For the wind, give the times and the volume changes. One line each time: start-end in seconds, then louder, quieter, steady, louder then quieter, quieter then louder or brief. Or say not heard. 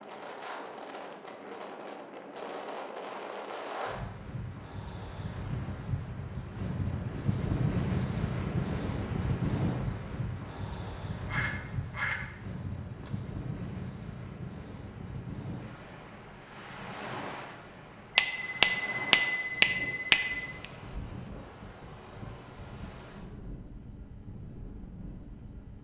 0.0-25.7 louder then quieter.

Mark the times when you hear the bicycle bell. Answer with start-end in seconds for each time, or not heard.
18.1-20.6.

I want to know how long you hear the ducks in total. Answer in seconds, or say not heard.
2 s.